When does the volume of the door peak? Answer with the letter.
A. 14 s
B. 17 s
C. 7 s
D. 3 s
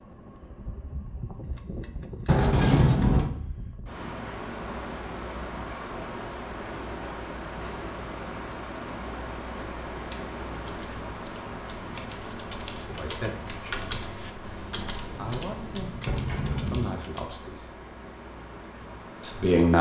D.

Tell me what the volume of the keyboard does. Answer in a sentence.
The volume of the keyboard goes up, then down.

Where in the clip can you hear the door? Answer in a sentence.
You can hear the door from 2.2 to 3.3 s and from 14.8 to 16.9 s.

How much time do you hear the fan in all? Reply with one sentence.
The fan can be heard for 20 seconds in total.